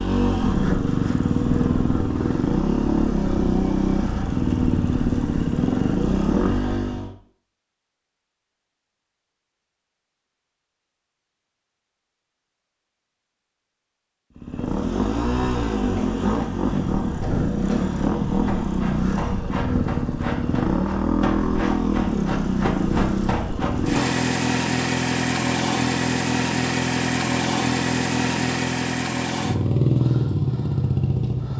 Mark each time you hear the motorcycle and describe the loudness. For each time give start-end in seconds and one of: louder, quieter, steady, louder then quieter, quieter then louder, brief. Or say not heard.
0.0-7.1 steady
14.3-31.5 steady.